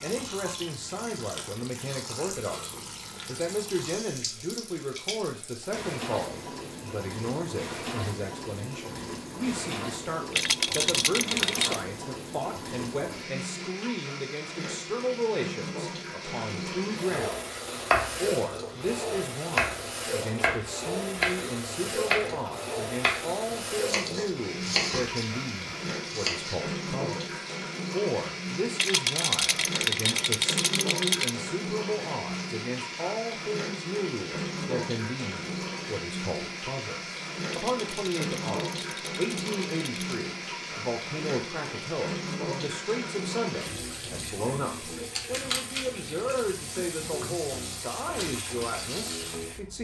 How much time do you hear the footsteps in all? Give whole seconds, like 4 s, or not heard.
not heard.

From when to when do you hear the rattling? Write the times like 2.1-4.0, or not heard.
10.3-11.8, 28.8-31.4, 37.5-40.2.